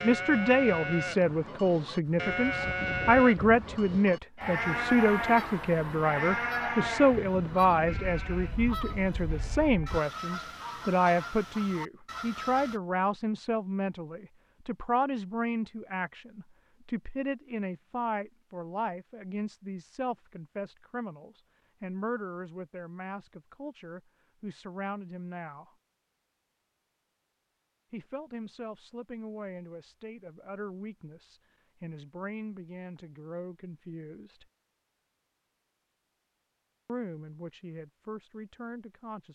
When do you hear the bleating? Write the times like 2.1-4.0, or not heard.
0.0-10.0.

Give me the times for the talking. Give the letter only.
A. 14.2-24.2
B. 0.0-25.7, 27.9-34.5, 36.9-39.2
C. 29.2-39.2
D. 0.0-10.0
B.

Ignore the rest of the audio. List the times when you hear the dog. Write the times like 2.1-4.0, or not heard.
not heard.